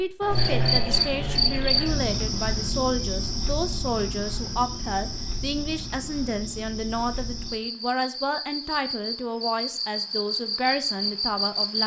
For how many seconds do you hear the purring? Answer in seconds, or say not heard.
not heard.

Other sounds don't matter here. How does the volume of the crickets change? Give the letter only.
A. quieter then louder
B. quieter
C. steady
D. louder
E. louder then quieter
A.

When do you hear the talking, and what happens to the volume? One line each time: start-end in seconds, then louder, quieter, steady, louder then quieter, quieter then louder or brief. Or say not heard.
0.0-11.8 steady.